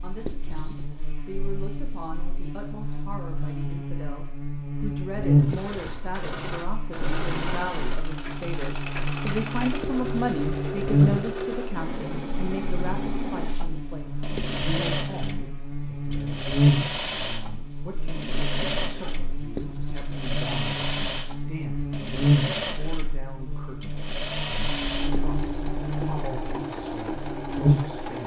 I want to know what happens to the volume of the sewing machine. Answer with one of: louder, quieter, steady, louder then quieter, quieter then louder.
steady.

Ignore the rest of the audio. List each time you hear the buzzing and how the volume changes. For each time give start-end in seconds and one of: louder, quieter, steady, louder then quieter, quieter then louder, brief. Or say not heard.
0.0-28.1 quieter then louder.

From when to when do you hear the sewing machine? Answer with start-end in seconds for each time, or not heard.
5.4-28.2.